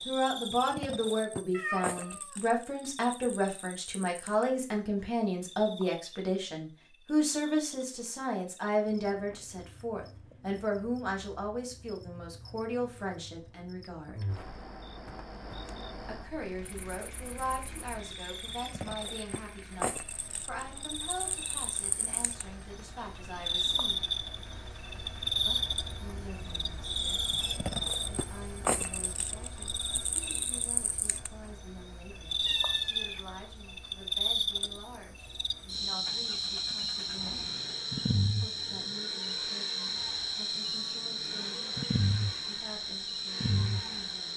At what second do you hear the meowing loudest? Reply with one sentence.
The loudest moment of the meowing is at 2 seconds.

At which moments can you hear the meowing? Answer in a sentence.
You can hear the meowing from 1.5 to 2.4 s and from 32.5 to 33.3 s.